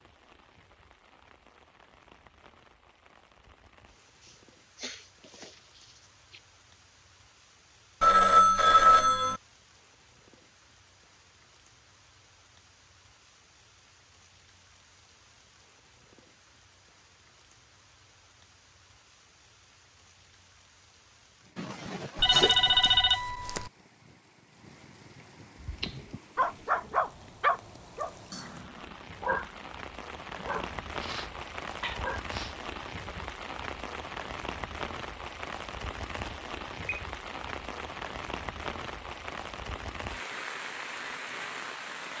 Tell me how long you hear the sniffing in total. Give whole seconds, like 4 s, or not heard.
5 s.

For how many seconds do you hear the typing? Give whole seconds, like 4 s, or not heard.
not heard.